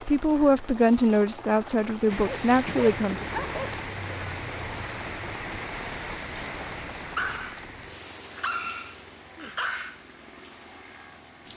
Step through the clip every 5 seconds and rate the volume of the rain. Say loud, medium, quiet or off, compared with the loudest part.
loud, loud, quiet.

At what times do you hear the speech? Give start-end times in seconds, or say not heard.
0.1-3.2.